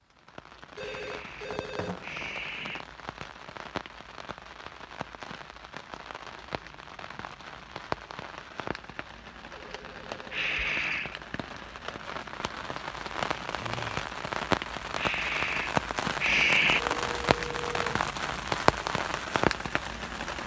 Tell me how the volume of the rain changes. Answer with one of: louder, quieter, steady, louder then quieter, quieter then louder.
louder.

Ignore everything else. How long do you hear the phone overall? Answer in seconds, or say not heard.
4 s.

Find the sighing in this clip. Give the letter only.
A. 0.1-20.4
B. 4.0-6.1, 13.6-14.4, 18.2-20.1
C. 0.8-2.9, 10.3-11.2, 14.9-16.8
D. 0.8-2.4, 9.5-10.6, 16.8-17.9
C.